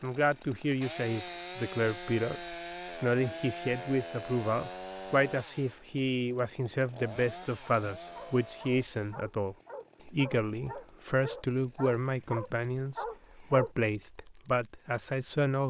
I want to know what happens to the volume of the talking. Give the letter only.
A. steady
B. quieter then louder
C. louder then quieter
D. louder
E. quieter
A.